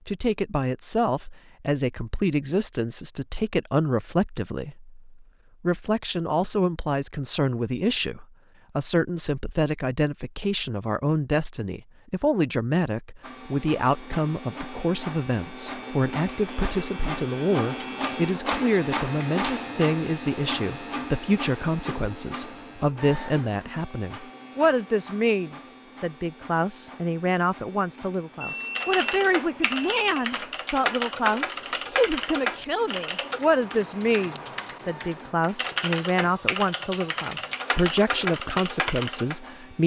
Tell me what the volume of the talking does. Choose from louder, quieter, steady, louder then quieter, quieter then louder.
steady.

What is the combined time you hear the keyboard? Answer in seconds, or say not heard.
11 s.